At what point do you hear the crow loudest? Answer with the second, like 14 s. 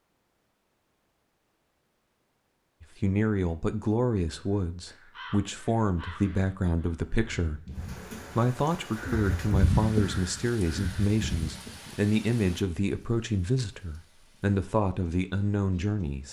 10 s.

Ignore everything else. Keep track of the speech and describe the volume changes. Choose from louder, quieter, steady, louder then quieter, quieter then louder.
steady.